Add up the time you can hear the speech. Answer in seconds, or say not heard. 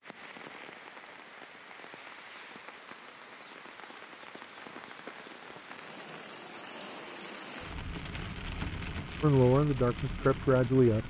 2 s.